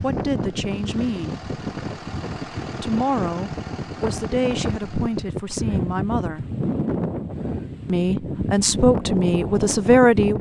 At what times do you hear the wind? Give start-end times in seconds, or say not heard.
0.0-10.3.